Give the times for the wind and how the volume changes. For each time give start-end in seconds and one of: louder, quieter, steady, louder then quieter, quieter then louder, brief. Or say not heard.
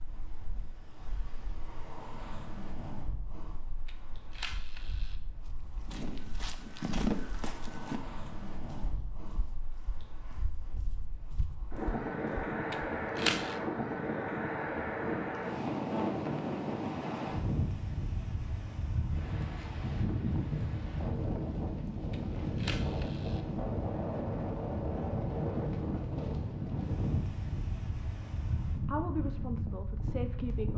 0.0-30.7 louder.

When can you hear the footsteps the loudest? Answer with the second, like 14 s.
7 s.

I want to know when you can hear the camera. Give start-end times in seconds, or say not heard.
3.9-5.2, 12.7-13.6, 22.1-23.4.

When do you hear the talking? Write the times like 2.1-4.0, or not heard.
28.8-30.7.